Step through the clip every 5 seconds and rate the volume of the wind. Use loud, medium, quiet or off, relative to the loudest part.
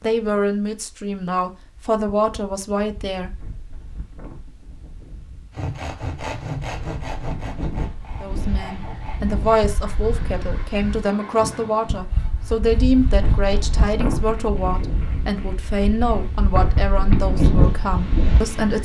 quiet, medium, medium, loud.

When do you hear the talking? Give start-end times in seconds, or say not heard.
0.0-3.3, 8.2-18.8.